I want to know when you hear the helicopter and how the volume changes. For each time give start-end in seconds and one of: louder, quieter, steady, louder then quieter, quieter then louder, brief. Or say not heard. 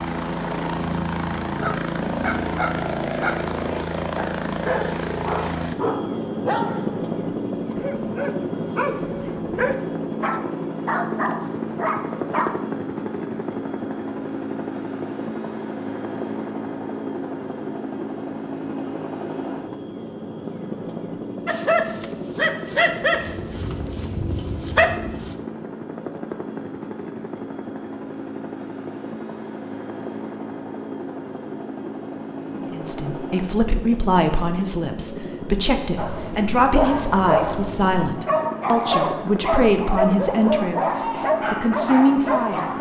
0.0-42.7 quieter.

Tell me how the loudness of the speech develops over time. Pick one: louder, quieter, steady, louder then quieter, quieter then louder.
steady.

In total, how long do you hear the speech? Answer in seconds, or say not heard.
10 s.